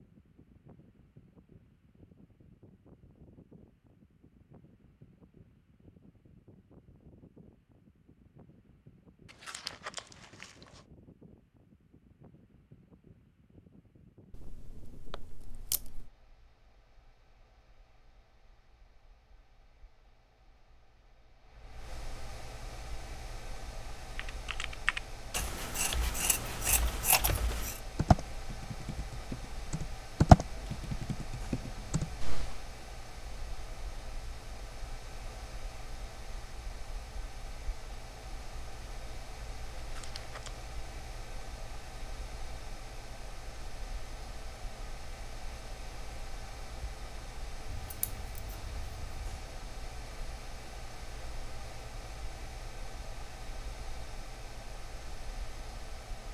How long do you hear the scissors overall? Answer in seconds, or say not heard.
6 s.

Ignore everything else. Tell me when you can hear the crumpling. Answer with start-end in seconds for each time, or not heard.
9.2-10.8, 39.8-40.6.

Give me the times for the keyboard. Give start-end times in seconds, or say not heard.
24.1-32.6.